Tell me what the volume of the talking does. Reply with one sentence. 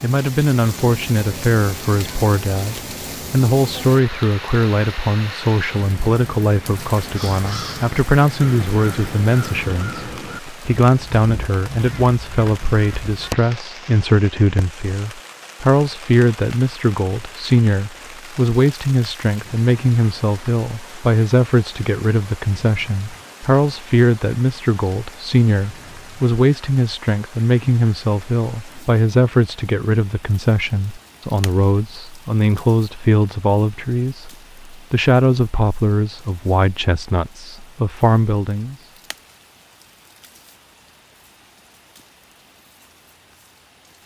The loudness of the talking stays about the same.